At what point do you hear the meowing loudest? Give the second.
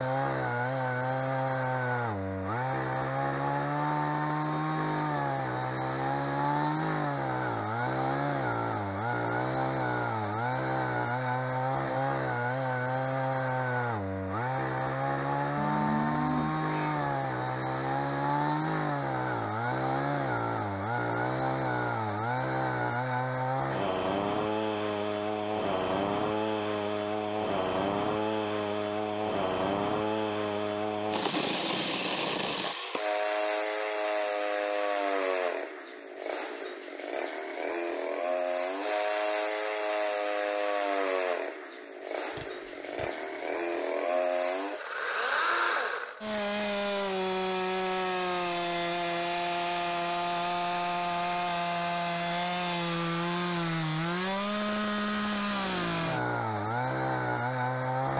16 s.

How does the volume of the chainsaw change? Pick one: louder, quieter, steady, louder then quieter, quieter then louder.
steady.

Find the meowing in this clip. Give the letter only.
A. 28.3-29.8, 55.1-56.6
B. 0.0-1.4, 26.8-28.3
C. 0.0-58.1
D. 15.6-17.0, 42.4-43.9
D.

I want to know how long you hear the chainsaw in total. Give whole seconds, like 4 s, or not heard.
58 s.